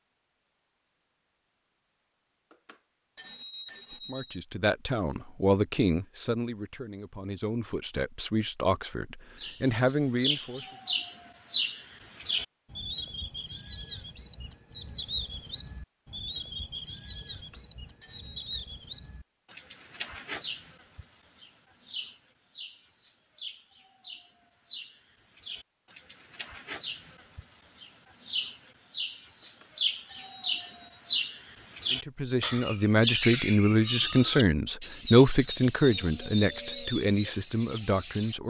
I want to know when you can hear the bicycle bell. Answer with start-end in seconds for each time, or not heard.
2.5-4.4, 17.4-18.7, 29.4-30.9.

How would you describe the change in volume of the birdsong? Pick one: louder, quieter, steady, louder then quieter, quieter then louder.
quieter then louder.